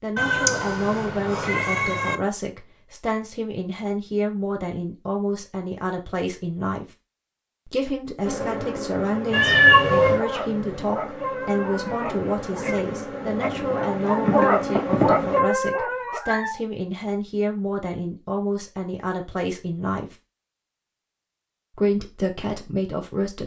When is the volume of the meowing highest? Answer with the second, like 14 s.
10 s.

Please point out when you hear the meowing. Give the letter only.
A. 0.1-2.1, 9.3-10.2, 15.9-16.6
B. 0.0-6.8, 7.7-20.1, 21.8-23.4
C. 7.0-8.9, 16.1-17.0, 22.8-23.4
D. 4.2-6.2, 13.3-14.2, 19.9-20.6
A.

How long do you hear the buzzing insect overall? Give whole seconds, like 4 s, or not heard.
7 s.